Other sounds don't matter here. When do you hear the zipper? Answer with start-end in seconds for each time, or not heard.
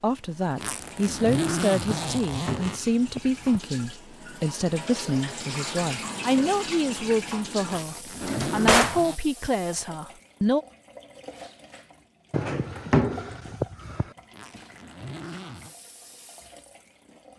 0.6-2.9, 7.7-9.2, 14.3-15.8.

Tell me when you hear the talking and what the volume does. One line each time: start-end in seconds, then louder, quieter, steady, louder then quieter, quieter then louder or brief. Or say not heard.
0.0-10.7 steady.